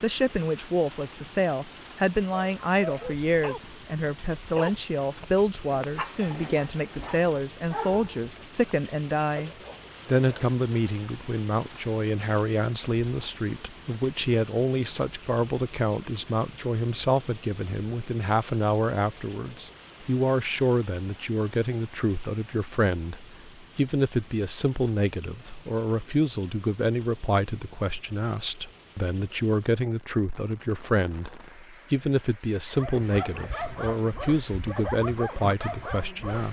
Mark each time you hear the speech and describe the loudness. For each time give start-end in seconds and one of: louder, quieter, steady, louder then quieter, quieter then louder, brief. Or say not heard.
0.0-36.4 steady.